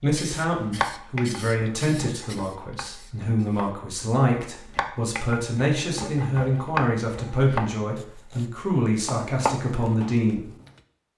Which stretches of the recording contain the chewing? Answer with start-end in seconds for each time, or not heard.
not heard.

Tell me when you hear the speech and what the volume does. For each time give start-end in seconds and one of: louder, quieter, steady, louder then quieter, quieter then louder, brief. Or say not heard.
0.0-10.5 steady.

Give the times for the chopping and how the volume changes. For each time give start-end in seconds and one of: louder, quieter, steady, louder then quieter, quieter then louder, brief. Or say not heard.
0.5-8.4 quieter then louder
9.1-10.7 brief.